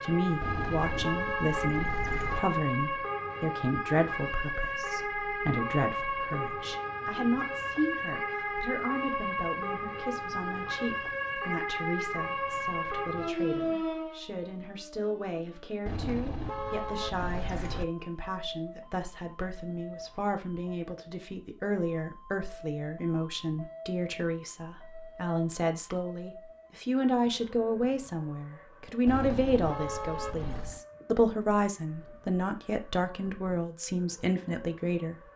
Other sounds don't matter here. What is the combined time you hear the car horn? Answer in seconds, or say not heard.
6 s.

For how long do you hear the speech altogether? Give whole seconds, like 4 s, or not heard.
35 s.